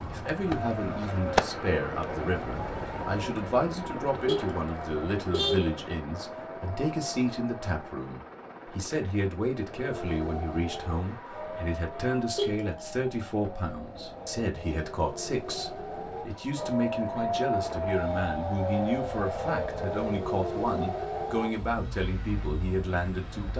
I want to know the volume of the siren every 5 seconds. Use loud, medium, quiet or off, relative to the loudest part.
loud, medium, medium, loud, loud.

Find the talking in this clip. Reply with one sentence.
The talking can be heard from 0.1 to 23.5 s.